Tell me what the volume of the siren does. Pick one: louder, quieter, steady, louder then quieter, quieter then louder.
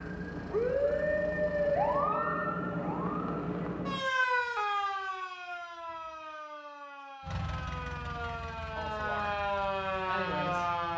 quieter then louder.